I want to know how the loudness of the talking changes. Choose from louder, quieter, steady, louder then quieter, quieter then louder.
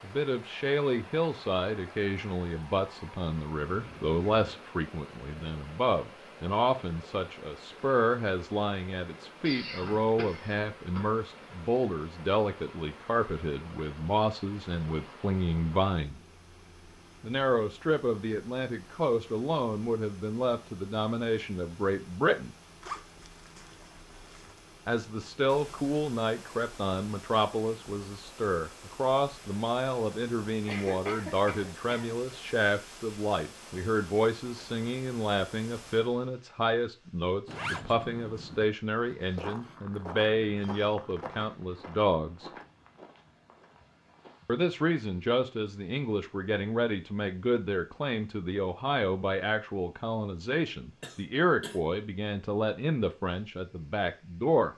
steady.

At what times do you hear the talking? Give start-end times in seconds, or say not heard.
0.0-16.2, 17.2-22.6, 24.9-42.5, 44.5-54.7.